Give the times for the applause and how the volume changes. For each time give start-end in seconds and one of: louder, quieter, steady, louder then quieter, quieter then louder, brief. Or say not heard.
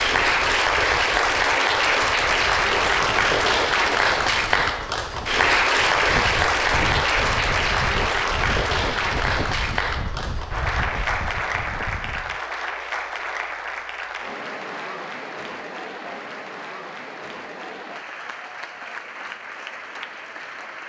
0.0-20.8 quieter.